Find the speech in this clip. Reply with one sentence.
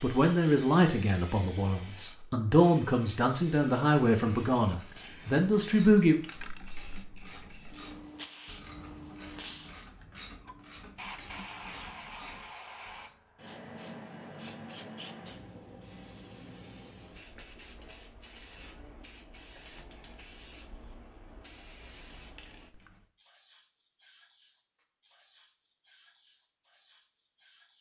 The speech can be heard from 0.0 to 6.2 s.